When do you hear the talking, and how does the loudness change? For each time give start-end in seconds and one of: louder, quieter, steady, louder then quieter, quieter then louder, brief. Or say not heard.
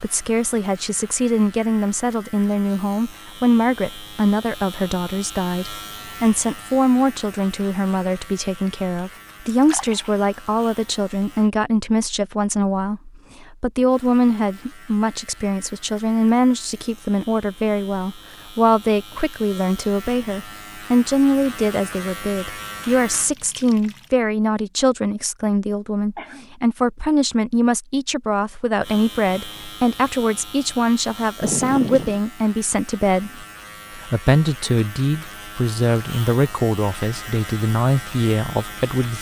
0.0-39.1 steady.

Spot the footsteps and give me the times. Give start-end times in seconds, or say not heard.
not heard.